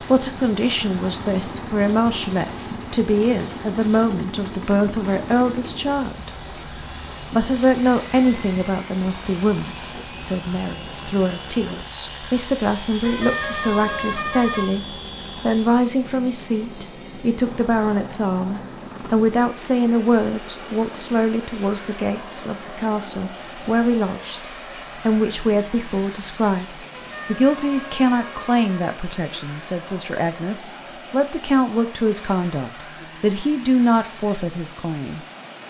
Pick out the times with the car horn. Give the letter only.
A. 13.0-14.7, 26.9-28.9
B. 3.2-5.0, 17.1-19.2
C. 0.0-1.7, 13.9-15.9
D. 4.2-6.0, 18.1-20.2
A.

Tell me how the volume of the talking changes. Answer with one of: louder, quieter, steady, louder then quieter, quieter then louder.
steady.